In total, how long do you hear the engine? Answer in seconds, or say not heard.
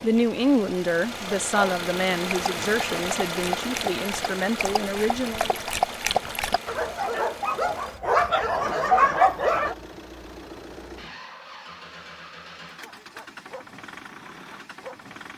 15 s.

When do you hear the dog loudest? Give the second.
9 s.